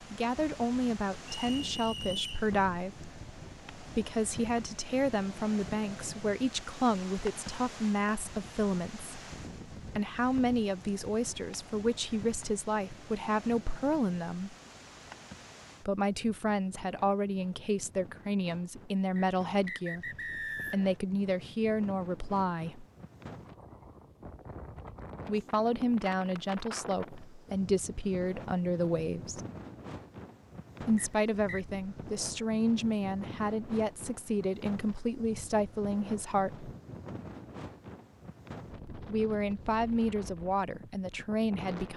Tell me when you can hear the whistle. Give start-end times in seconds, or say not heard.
1.4-2.5, 19.1-20.9, 30.9-31.6.